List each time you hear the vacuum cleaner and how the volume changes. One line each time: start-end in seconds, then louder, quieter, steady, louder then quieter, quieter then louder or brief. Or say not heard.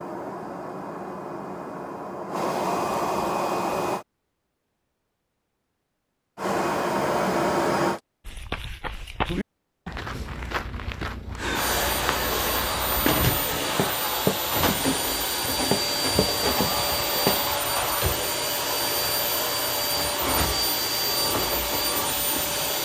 0.0-4.0 louder
6.3-8.0 brief
11.3-22.8 steady.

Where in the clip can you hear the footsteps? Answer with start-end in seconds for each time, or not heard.
8.2-17.6.